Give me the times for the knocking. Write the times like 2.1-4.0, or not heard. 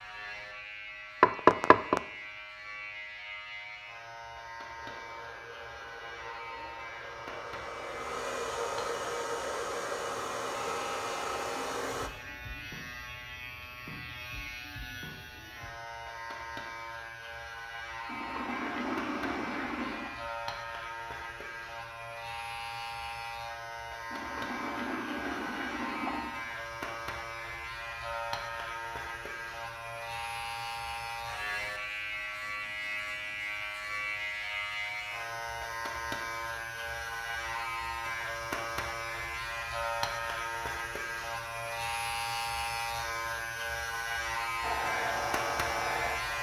1.2-2.0.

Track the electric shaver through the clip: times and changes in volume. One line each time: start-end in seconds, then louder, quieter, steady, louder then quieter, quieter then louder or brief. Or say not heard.
0.0-46.3 louder.